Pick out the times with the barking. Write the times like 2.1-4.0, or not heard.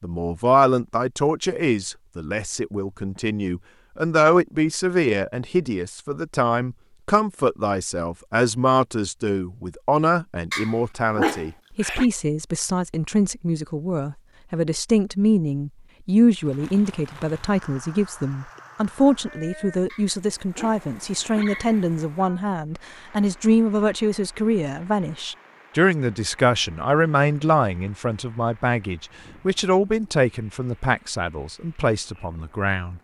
10.5-12.1, 19.9-21.9.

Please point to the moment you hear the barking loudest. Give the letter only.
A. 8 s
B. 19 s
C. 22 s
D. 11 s
D.